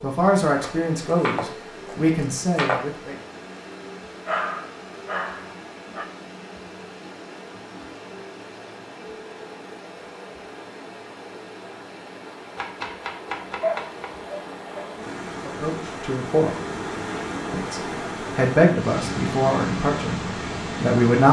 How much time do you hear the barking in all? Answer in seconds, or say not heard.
3 s.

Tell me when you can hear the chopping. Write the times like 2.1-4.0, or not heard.
0.6-2.9, 12.6-14.1.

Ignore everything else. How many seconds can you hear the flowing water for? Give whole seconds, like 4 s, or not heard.
21 s.